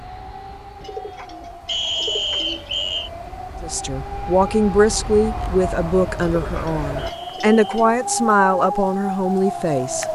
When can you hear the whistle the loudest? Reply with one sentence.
The loudest moment of the whistle is at 2 seconds.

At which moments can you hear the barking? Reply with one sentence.
The barking can't be heard in this clip.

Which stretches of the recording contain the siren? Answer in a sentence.
The siren can be heard from 0.0 to 10.1 s.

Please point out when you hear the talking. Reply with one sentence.
The talking can be heard from 3.6 to 10.1 s.